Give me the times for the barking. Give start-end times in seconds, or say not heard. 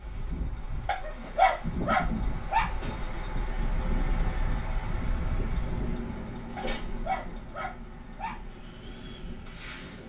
0.8-2.8, 6.5-8.4.